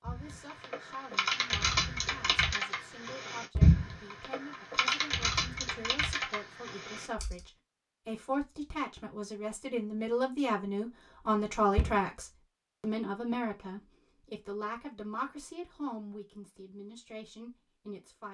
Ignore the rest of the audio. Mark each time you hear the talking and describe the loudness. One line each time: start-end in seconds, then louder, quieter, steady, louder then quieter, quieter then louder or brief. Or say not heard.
0.0-18.3 louder then quieter.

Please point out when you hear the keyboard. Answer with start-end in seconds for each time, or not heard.
0.1-7.5.